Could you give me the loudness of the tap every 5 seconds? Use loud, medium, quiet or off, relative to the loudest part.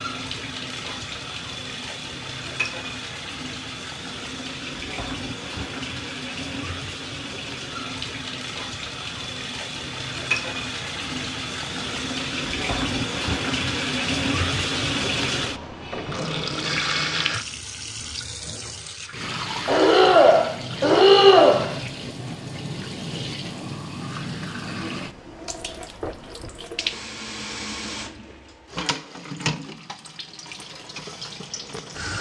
medium, medium, loud, loud, medium, medium, medium.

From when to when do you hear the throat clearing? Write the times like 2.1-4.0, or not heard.
19.2-21.7.